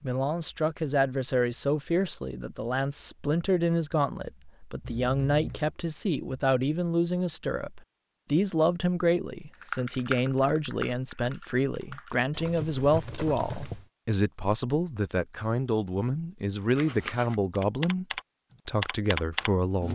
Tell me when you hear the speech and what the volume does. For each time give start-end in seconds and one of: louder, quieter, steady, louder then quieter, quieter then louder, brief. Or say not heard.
0.0-18.1 steady
18.6-19.9 brief.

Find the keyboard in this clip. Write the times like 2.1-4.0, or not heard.
9.6-13.8, 17.6-19.9.